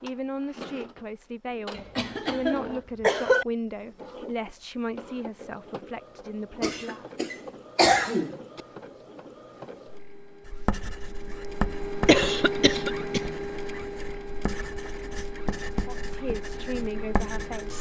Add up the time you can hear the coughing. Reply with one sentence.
The coughing can be heard for 5 seconds in total.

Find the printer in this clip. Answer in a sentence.
The printer can be heard from 0.0 to 17.7 s.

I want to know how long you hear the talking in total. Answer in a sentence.
You can hear the talking for 9 seconds altogether.